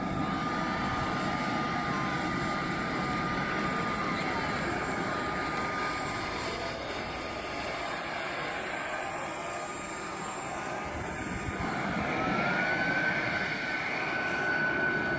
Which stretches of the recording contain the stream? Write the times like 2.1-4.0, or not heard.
not heard.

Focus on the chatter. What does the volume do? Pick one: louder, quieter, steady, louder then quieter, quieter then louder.
steady.